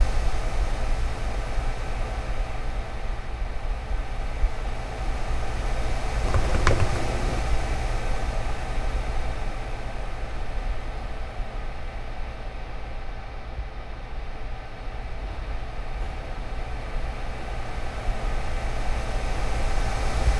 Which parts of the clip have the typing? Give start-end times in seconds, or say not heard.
6.2-7.4.